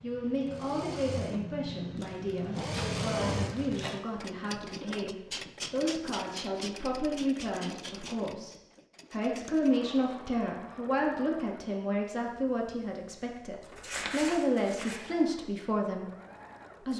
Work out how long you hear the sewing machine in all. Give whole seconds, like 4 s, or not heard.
17 s.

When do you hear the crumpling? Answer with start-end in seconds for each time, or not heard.
1.9-4.0, 13.7-15.0.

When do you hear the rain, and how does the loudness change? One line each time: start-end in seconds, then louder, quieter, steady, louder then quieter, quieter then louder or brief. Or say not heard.
not heard.